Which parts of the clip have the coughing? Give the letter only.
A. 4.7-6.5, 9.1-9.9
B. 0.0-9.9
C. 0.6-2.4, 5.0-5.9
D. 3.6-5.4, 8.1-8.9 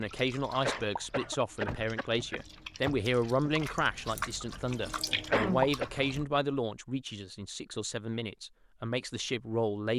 C.